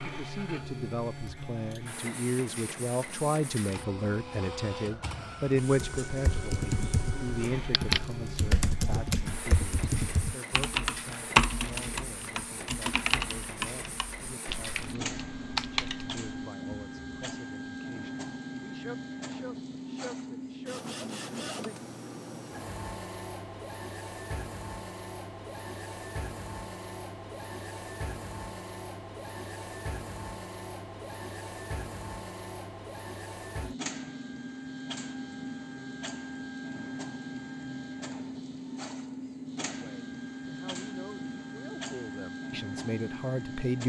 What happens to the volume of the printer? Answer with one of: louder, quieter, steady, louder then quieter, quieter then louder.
steady.